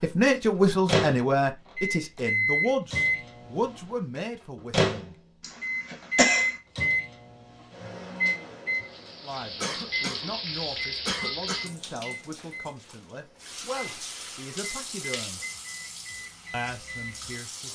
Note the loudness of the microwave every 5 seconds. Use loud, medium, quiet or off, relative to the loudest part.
loud, loud, quiet, quiet.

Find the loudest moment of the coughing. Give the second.
6 s.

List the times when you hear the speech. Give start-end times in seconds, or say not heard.
0.0-5.2, 9.2-15.4, 16.5-17.6.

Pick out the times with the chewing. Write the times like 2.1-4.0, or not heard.
not heard.